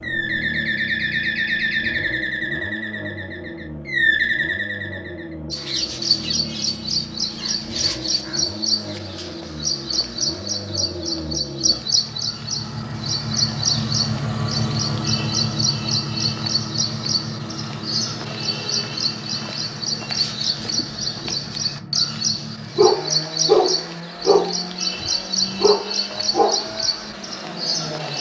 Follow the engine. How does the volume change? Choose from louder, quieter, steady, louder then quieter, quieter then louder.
louder then quieter.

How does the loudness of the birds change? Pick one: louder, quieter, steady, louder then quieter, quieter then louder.
steady.